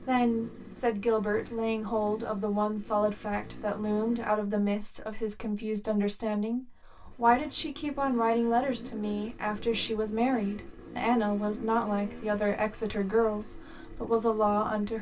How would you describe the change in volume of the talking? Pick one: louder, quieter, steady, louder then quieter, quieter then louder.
steady.